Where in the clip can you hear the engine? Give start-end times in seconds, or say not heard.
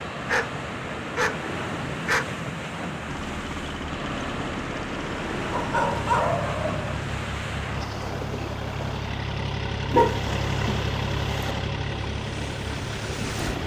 3.0-13.6.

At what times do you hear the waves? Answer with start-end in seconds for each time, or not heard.
0.0-13.6.